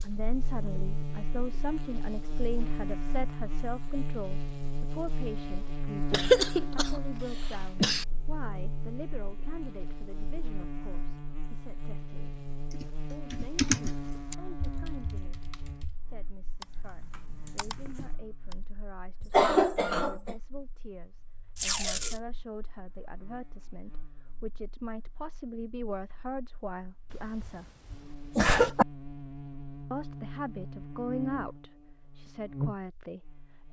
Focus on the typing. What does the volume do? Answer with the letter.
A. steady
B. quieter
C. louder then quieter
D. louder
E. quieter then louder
E.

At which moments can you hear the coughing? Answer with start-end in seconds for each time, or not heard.
6.1-8.1, 19.2-20.4, 27.1-28.9.